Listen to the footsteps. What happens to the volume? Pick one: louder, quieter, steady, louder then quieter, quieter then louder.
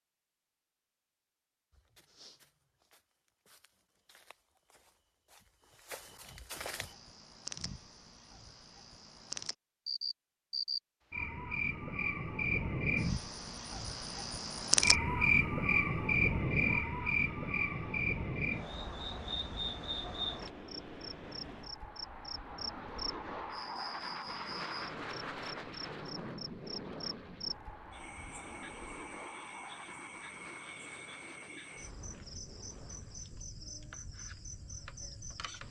quieter then louder.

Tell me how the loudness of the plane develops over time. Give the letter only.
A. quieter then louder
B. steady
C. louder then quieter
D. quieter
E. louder
C.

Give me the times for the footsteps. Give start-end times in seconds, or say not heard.
1.7-7.0.